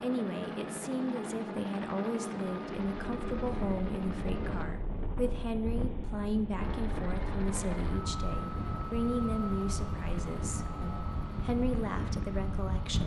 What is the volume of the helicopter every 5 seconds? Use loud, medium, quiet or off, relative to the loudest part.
loud, loud, medium.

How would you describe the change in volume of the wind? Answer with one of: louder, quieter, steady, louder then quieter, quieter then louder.
steady.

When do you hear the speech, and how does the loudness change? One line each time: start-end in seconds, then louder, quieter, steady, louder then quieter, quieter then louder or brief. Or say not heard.
0.0-13.0 steady.